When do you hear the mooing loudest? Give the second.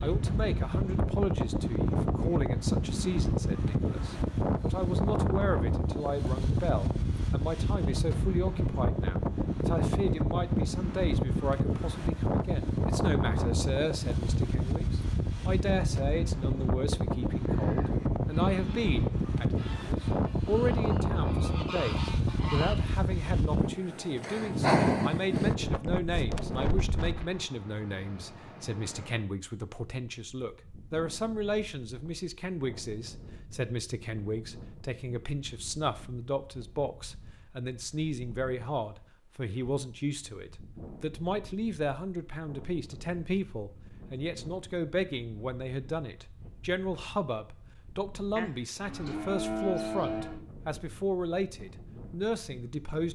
50 s.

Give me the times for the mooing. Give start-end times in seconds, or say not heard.
48.4-50.5.